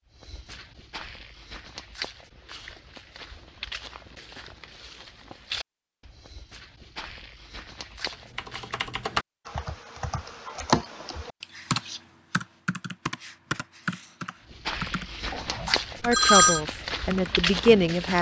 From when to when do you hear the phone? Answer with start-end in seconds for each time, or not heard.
15.3-16.6.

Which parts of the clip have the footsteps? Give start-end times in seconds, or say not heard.
0.1-8.8, 14.4-18.1.